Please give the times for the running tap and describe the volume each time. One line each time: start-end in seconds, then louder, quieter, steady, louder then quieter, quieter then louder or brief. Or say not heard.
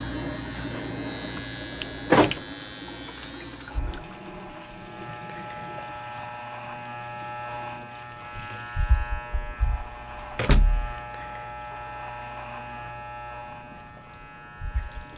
0.0-15.1 quieter.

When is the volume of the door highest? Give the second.
2 s.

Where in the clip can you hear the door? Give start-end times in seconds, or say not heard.
1.8-2.4, 10.3-10.9.